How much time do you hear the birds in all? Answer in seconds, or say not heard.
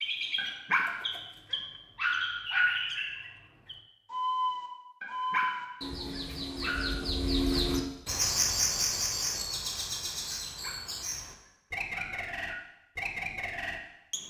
14 s.